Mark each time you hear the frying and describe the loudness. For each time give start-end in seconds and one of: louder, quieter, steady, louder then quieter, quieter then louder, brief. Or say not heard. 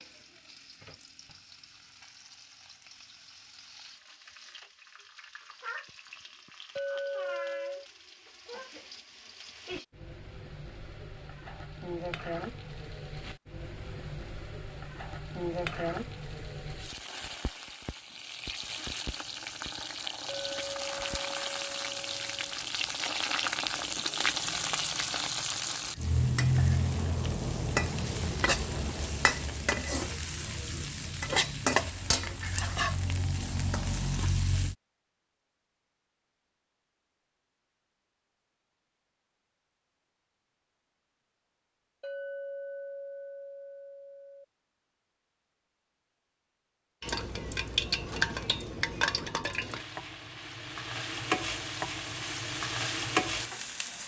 0.0-34.8 louder
47.0-54.0 quieter then louder.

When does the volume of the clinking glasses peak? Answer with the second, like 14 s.
7 s.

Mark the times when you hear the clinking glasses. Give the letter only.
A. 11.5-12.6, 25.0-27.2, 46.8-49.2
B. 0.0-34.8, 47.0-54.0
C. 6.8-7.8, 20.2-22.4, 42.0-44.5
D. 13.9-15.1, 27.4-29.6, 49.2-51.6
C.